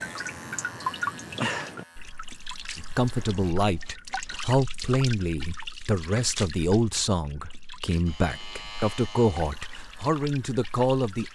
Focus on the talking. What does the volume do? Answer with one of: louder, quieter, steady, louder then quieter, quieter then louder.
steady.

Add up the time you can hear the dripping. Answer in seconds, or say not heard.
11 s.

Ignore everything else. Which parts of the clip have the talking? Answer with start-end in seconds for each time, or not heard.
2.8-11.3.